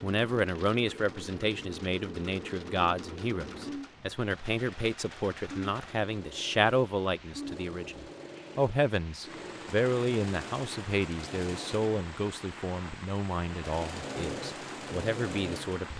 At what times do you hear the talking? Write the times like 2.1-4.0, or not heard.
0.0-15.9.